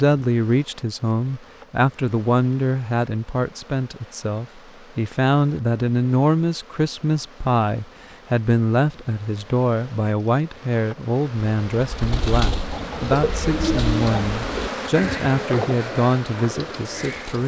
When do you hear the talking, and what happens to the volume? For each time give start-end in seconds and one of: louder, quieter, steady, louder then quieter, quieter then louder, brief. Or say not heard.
0.0-17.4 steady.